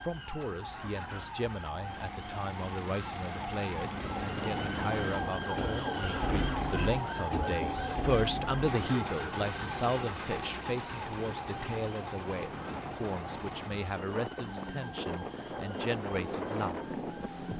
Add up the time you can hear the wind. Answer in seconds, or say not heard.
14 s.